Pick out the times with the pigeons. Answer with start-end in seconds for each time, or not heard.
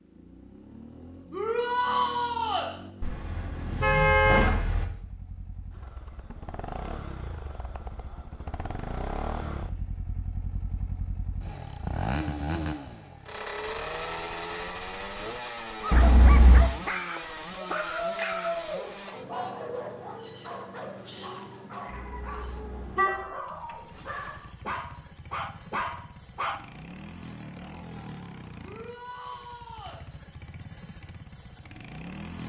not heard.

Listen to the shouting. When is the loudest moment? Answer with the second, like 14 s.
2 s.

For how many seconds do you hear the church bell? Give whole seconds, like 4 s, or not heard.
not heard.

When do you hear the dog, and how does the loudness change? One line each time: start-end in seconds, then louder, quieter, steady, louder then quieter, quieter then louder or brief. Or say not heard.
15.8-26.6 quieter then louder.